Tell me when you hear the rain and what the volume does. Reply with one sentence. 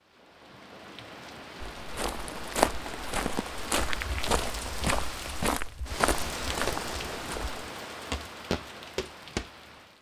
The rain can be heard from 0.0 to 9.9 s, getting louder then quieter.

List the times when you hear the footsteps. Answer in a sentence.
You can hear the footsteps from 1.8 to 9.5 s.